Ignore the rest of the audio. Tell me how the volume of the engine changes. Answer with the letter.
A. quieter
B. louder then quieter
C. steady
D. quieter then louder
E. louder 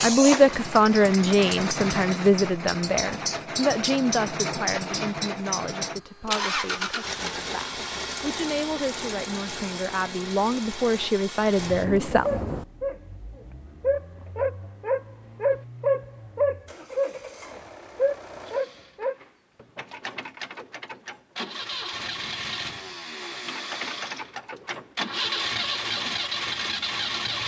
D.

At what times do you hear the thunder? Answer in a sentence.
You can hear the thunder from 11.6 to 12.7 s.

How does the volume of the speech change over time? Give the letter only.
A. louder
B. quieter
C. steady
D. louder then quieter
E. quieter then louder
E.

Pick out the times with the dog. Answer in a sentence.
The dog can be heard from 12.2 to 19.1 s.